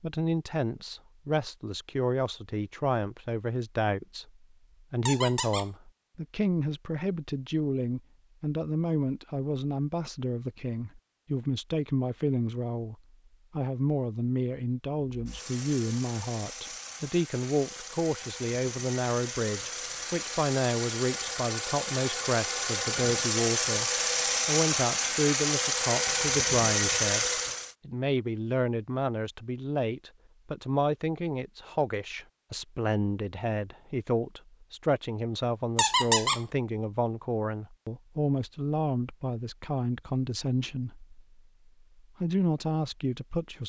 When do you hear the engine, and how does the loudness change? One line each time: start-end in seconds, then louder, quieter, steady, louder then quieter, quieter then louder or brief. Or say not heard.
15.1-27.8 louder.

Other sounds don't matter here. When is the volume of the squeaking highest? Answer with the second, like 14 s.
36 s.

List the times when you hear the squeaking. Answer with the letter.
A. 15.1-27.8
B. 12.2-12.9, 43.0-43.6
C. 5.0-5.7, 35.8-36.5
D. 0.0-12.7
C.